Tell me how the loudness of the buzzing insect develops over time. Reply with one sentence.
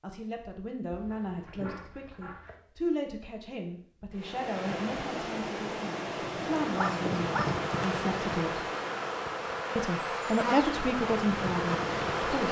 The loudness of the buzzing insect stays about the same.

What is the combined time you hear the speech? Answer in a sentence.
You can hear the speech for 11 seconds altogether.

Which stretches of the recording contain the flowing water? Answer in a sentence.
You can hear the flowing water from 4.1 to 12.4 s.